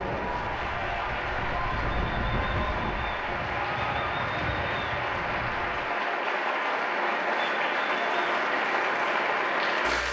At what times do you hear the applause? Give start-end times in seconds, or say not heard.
0.0-10.0.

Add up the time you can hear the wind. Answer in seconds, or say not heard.
6 s.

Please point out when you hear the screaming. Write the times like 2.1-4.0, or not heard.
not heard.